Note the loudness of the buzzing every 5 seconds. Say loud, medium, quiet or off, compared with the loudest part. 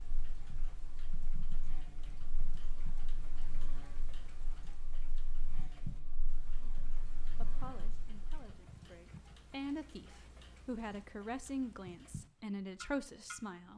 loud, loud, off.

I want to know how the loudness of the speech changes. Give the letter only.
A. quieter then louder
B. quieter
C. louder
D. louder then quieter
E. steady
A.